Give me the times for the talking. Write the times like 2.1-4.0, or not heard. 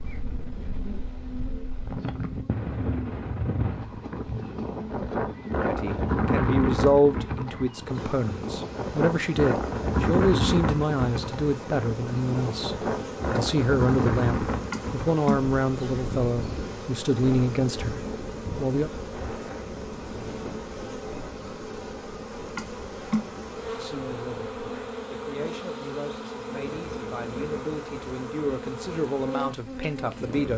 5.7-18.9, 23.8-30.5.